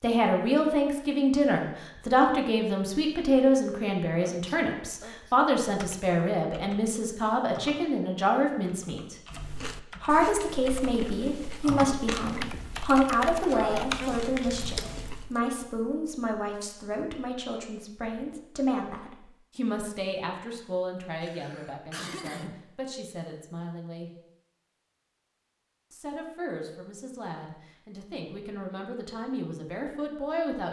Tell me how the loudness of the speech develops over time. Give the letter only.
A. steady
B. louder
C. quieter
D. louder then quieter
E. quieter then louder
C.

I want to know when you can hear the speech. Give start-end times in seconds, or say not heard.
0.0-9.2, 10.0-24.1, 25.9-30.6.